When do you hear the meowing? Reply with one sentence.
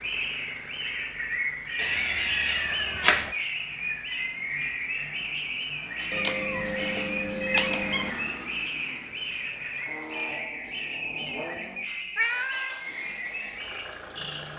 You can hear the meowing from 1.8 to 3.3 s, from 6.1 to 8.1 s and from 12.2 to 12.8 s.